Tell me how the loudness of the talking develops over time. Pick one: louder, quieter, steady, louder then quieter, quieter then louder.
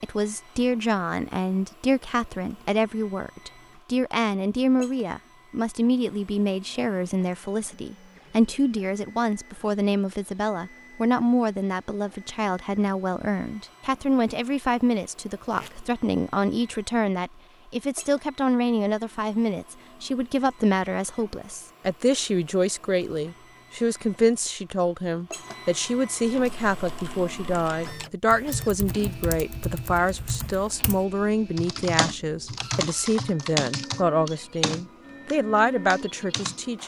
steady.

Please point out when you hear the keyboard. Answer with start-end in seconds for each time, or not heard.
26.2-36.6.